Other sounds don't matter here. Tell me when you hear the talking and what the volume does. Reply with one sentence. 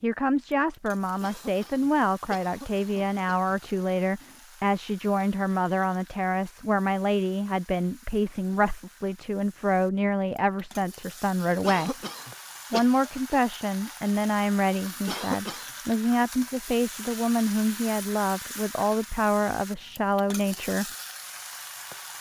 You can hear the talking from 0.0 to 11.9 s, at a steady volume; and from 12.7 to 20.9 s, at a steady volume.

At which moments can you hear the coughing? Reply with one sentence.
You can hear the coughing from 1.2 to 3.5 s, from 11.6 to 12.8 s and from 15.1 to 15.8 s.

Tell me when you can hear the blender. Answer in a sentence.
The blender can't be heard in this clip.